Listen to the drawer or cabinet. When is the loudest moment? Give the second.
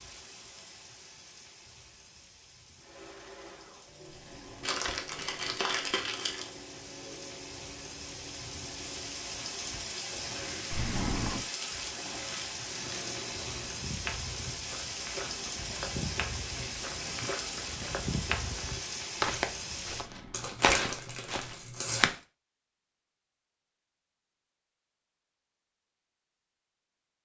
11 s.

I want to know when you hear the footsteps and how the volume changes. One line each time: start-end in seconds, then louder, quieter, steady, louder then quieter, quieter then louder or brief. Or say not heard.
13.7-22.1 louder.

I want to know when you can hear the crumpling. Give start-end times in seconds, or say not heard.
4.6-6.5, 11.6-12.5, 20.3-22.1.